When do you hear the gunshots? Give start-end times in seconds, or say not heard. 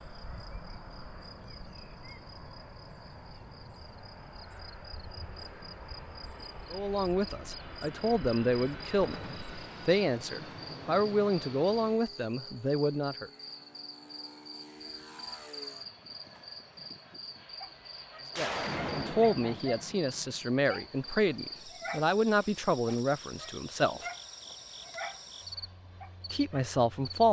9.0-9.5, 18.3-20.6.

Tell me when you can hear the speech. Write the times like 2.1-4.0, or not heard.
6.7-13.3, 18.4-24.1, 26.3-27.2.